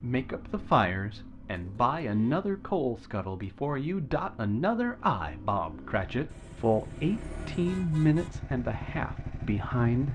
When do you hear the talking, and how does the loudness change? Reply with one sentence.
The talking can be heard from 0.0 to 10.1 s, at a steady volume.